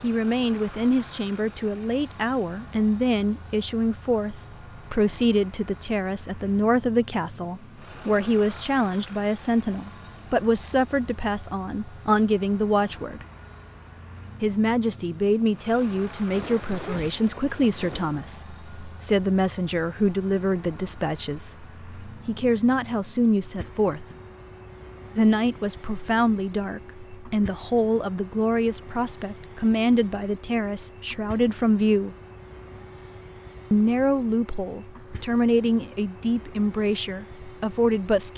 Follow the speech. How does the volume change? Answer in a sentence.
The loudness of the speech stays about the same.